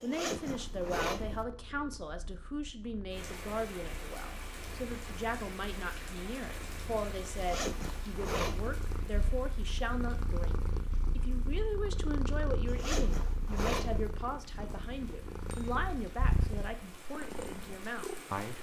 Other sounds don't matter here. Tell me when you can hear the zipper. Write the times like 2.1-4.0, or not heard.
0.0-1.4, 7.3-8.8, 12.7-14.1.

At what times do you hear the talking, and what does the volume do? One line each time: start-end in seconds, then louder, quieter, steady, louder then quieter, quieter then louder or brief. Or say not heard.
0.0-18.5 steady.